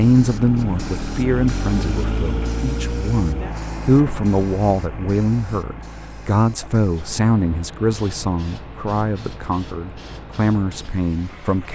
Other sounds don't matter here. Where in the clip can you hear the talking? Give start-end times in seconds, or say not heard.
0.0-11.7.